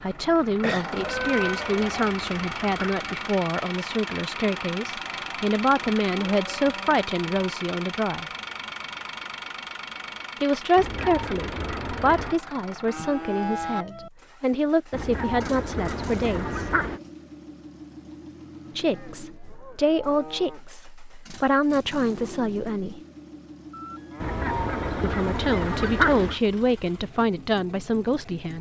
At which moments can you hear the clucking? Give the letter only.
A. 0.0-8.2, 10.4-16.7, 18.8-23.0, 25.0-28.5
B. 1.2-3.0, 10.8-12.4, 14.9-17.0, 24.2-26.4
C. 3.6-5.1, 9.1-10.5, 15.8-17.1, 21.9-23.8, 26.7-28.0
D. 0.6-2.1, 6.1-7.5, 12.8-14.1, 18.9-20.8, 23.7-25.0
B.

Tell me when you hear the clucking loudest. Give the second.
26 s.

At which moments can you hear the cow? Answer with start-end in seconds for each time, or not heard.
0.6-2.1, 6.1-7.5, 12.8-14.1, 18.9-20.8, 23.7-25.0.